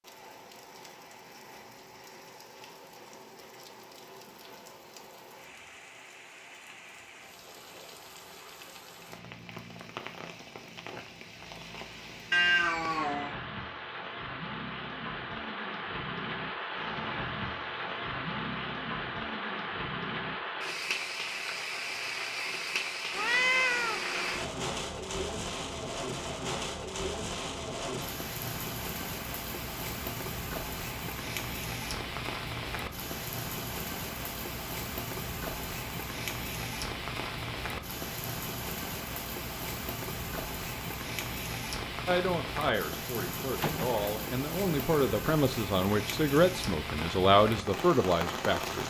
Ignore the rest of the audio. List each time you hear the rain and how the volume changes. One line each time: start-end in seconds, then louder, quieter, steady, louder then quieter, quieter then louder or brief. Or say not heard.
0.0-48.8 louder.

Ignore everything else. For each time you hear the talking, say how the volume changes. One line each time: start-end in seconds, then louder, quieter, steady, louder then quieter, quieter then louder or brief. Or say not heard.
42.0-48.8 louder.